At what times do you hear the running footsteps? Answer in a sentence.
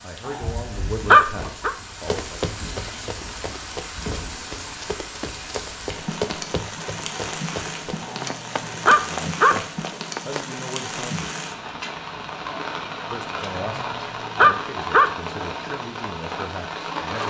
You can hear the running footsteps from 2.0 to 10.4 s.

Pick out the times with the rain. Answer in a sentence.
The rain can be heard from 0.0 to 17.2 s.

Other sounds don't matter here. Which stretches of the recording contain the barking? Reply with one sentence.
You can hear the barking from 0.2 to 1.8 s, from 8.0 to 9.6 s and from 13.6 to 15.1 s.